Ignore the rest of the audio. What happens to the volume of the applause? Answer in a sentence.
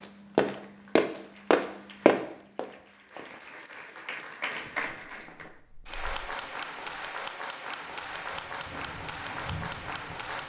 The volume of the applause goes up.